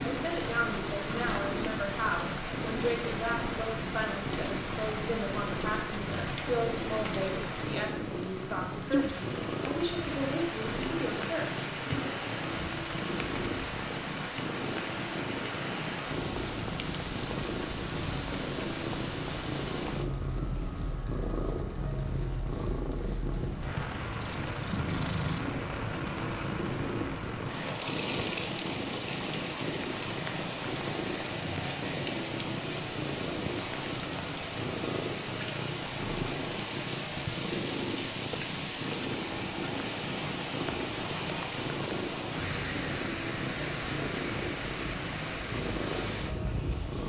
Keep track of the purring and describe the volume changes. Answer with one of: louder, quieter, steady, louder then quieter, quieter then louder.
steady.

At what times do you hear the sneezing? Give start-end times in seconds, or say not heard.
not heard.